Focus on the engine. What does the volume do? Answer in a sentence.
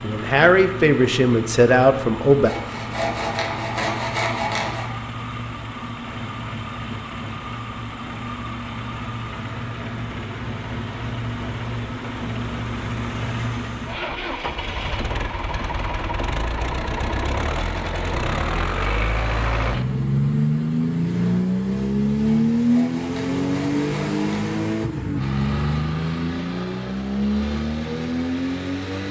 The loudness of the engine goes up.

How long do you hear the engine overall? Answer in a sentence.
You can hear the engine for 29 seconds altogether.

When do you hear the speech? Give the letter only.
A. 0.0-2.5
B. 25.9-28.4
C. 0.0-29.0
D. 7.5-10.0
A.